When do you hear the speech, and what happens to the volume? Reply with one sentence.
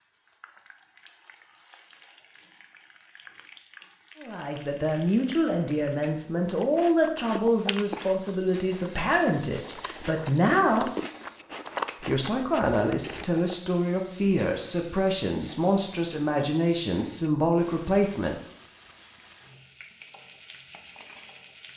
You can hear the speech from 4.2 to 10.9 s, at a steady volume; and from 12.0 to 18.4 s, at a steady volume.